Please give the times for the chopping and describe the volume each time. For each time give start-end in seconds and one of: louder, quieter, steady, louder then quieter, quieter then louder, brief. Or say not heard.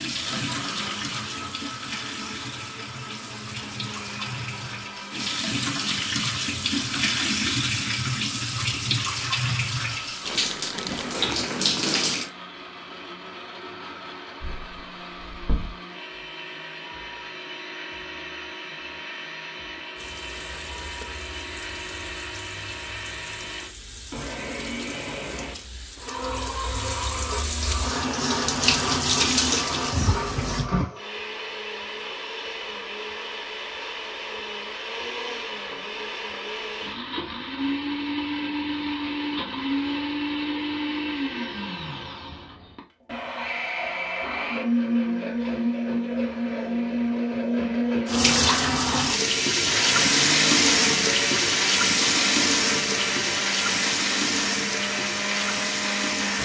not heard.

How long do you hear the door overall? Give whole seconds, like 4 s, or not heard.
2 s.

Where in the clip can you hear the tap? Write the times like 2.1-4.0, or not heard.
0.0-12.3, 19.9-30.7, 48.0-56.4.